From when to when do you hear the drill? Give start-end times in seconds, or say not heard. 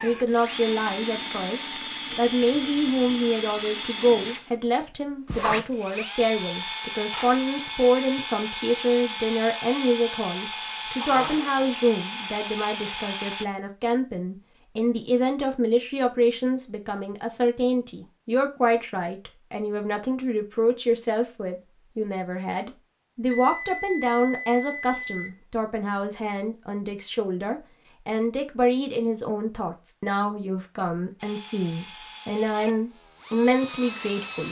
0.0-13.4, 31.1-34.4.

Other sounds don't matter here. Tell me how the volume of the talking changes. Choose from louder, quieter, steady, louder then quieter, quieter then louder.
steady.